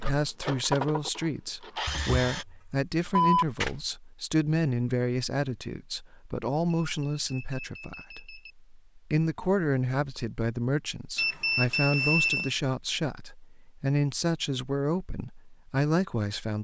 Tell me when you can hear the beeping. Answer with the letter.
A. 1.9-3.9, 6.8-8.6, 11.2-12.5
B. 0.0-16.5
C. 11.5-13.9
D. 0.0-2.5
A.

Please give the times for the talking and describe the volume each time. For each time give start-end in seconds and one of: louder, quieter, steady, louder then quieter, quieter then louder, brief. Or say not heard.
0.0-16.5 steady.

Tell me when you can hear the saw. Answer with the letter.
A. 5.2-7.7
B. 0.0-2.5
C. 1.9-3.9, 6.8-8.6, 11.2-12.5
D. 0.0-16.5
B.